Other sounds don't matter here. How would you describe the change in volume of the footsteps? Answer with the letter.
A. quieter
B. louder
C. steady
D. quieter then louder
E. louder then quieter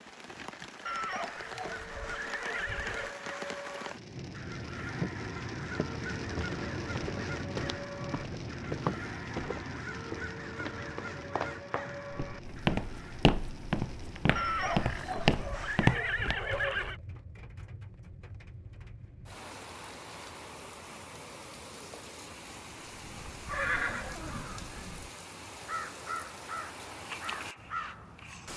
B.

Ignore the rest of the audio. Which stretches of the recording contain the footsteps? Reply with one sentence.
The footsteps can be heard from 5.6 to 16.4 s.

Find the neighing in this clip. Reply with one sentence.
The neighing can be heard from 0.8 to 3.1 s, from 14.3 to 17.0 s and from 23.4 to 25.0 s.